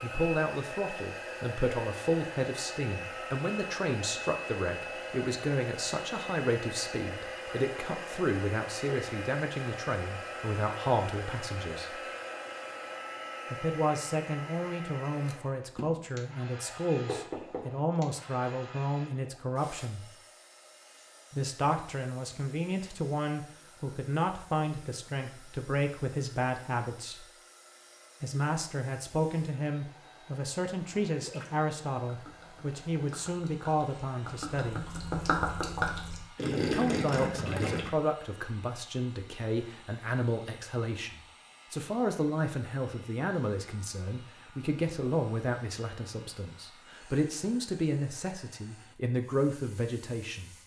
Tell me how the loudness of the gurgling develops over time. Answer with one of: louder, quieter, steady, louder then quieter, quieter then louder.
louder.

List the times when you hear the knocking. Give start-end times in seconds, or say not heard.
17.1-17.8.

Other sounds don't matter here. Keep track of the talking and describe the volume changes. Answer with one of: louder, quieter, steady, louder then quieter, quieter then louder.
steady.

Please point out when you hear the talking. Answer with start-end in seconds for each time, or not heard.
0.0-12.0, 13.5-20.1, 21.3-27.2, 28.2-34.9, 36.7-50.5.